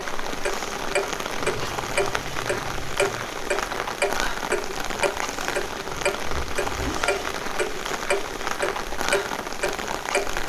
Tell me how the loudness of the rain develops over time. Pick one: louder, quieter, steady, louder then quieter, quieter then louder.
steady.